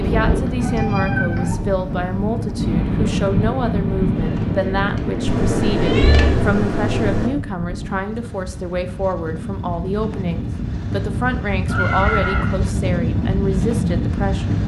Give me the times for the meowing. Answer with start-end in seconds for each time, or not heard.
0.5-1.6, 5.2-7.3, 11.7-12.6.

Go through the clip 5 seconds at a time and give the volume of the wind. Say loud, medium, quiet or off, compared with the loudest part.
loud, medium, loud.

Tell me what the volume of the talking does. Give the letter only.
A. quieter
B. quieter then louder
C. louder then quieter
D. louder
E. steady
E.